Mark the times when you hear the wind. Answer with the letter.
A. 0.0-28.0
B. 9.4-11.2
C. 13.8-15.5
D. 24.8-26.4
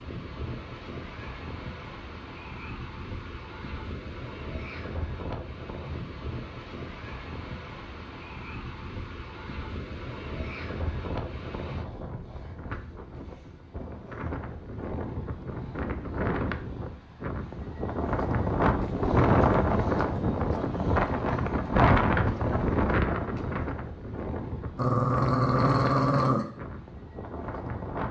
A.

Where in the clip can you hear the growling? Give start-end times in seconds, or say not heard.
24.8-26.4.